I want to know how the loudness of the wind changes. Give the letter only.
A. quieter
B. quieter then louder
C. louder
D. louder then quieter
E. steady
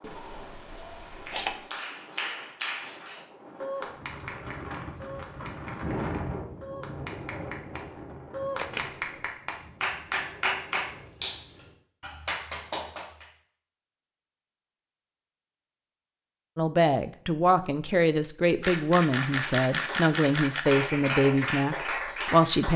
D.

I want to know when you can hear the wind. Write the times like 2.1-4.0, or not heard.
0.0-11.8.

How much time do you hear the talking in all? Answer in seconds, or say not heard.
6 s.